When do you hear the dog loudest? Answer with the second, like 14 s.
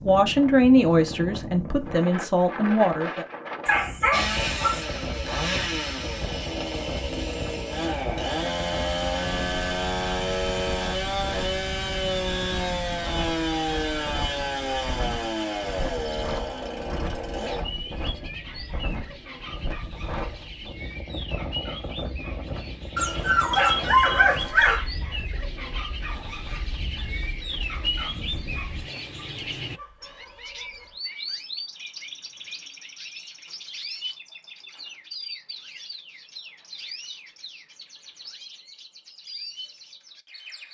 24 s.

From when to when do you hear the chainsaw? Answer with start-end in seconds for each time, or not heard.
4.1-17.6.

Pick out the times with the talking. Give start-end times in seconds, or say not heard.
0.0-3.2.